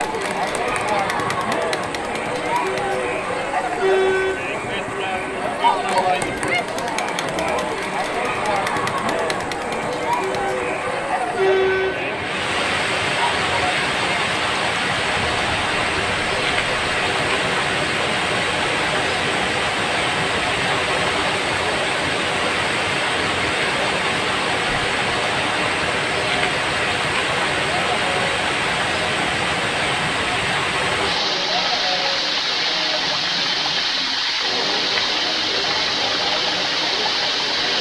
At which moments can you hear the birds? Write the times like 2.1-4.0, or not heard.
not heard.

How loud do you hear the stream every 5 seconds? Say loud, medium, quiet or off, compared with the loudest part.
medium, medium, loud, loud, loud, loud, loud, loud.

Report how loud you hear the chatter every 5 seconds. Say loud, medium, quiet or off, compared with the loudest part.
loud, loud, loud, medium, medium, medium, medium, medium.